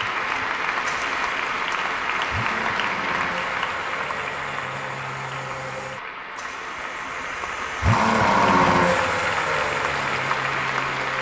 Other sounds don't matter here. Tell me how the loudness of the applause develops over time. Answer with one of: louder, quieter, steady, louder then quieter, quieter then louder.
quieter then louder.